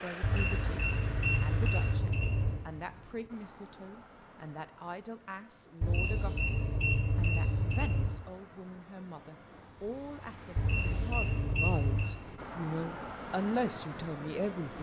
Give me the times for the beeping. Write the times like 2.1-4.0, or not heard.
0.2-2.6, 5.8-8.2, 10.6-12.2.